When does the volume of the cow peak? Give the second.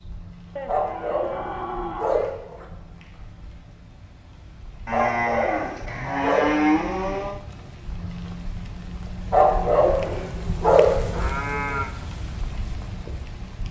7 s.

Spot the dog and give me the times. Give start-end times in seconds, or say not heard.
0.7-2.6, 4.9-6.5, 9.3-11.3.